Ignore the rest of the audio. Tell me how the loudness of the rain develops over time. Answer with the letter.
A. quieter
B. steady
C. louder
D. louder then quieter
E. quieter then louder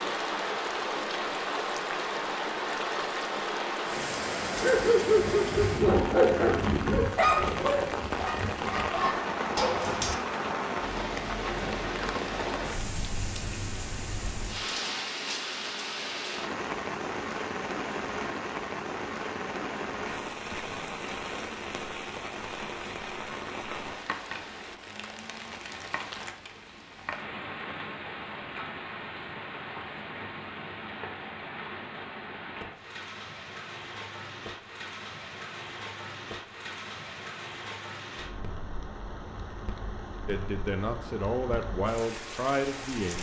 A.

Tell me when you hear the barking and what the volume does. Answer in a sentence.
The barking can be heard from 4.5 to 10.2 s, getting quieter then louder.